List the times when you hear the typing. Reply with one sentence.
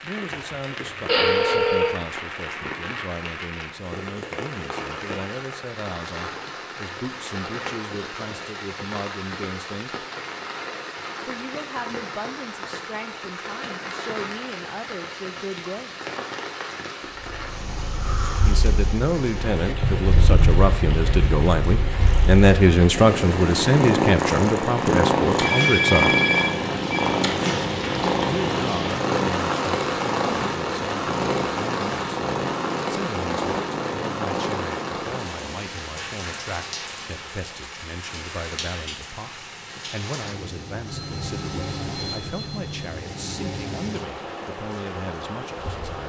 You can hear the typing from 19.8 to 21.4 s.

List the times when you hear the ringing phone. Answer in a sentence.
You can hear the ringing phone from 1.1 to 1.9 s, from 25.4 to 27.1 s and from 40.9 to 42.9 s.